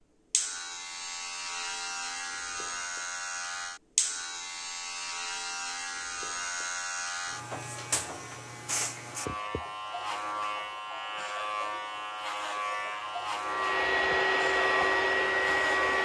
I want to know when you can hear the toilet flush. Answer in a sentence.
The toilet flush can't be heard in this clip.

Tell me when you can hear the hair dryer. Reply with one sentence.
You can hear the hair dryer from 13.4 to 16.0 s.